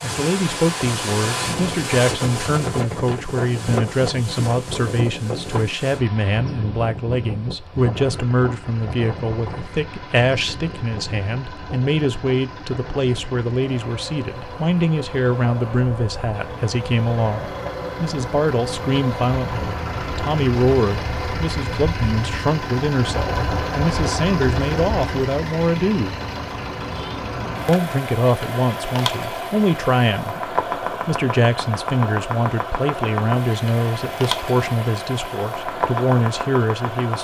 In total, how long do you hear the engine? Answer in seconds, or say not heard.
29 s.